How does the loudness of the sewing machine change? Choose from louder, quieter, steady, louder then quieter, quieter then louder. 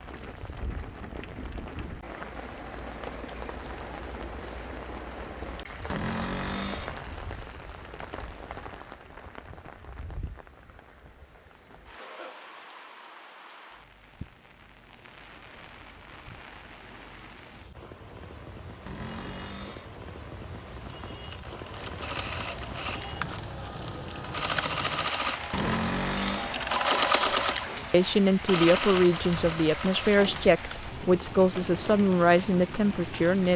louder then quieter.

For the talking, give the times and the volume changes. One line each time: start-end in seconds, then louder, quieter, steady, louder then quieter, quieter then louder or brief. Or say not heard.
27.9-33.5 steady.